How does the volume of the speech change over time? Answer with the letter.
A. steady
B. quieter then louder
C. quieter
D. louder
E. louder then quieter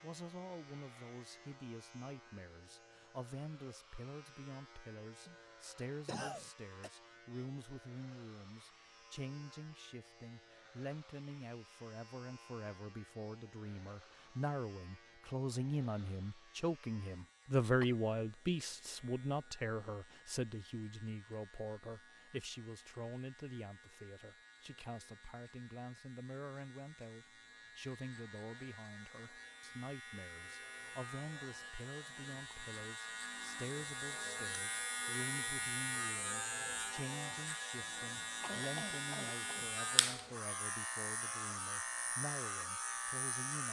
E.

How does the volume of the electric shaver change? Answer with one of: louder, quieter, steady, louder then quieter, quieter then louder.
louder.